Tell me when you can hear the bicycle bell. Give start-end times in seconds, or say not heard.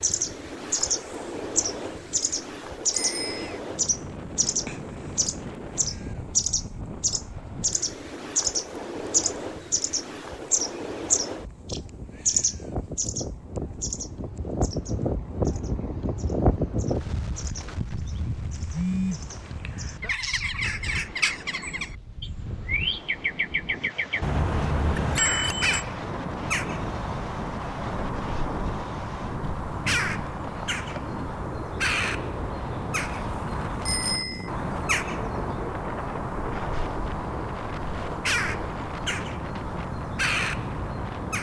3.0-3.6, 24.2-25.9, 33.9-34.5.